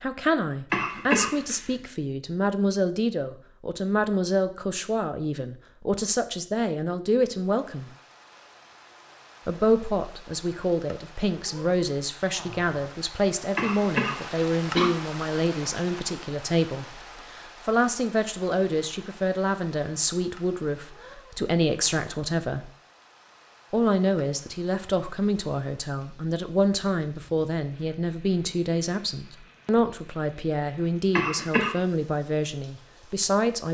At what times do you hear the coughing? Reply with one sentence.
You can hear the coughing from 0.7 to 1.6 s, from 13.6 to 14.9 s and from 31.1 to 31.8 s.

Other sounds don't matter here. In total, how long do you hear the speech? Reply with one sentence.
You can hear the speech for 31 seconds altogether.